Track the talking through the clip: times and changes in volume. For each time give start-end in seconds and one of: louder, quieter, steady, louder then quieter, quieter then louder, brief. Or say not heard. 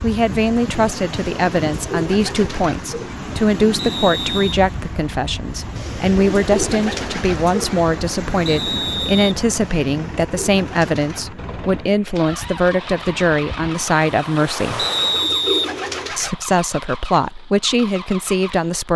0.0-14.8 steady
16.1-18.9 brief.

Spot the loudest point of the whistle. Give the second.
15 s.